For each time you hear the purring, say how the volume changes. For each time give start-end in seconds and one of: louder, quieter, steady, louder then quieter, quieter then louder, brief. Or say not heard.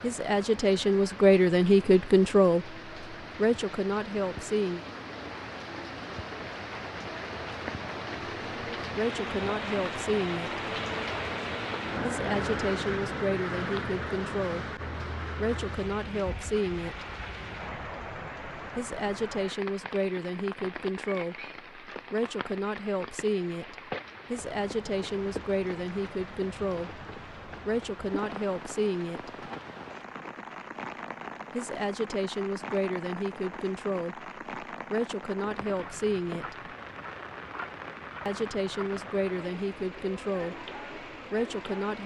not heard.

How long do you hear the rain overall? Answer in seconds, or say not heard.
42 s.